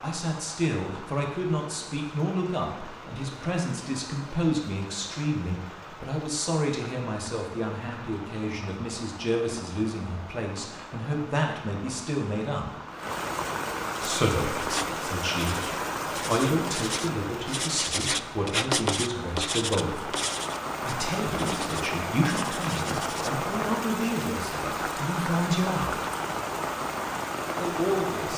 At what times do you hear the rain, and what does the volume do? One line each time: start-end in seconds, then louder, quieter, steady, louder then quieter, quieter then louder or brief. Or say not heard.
0.0-28.3 louder.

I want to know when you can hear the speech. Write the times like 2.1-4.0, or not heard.
0.0-12.7, 14.1-20.1, 20.9-26.0, 27.6-28.3.